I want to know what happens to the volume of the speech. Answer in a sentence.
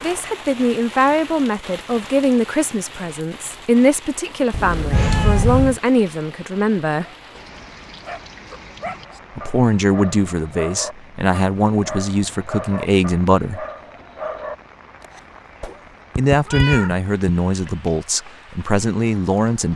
The volume of the speech stays about the same.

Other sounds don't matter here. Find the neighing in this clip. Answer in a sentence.
The neighing can't be heard in this clip.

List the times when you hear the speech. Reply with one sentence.
You can hear the speech from 0.0 to 7.0 s, from 9.3 to 13.7 s and from 16.1 to 19.7 s.